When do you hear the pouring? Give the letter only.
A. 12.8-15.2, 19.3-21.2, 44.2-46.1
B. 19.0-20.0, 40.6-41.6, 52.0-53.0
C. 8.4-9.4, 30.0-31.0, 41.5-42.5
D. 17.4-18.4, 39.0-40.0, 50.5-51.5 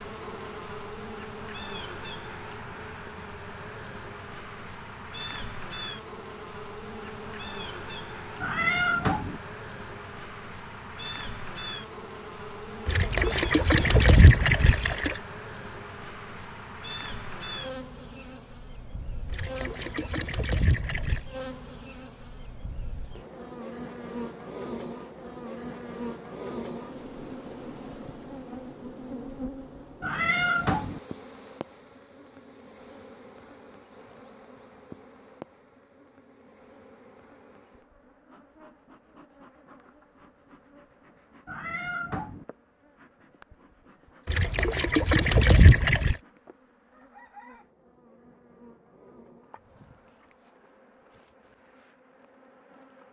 A.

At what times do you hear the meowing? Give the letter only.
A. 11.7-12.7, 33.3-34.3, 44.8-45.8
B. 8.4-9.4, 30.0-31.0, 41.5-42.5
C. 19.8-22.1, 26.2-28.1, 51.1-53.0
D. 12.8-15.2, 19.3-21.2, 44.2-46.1
B.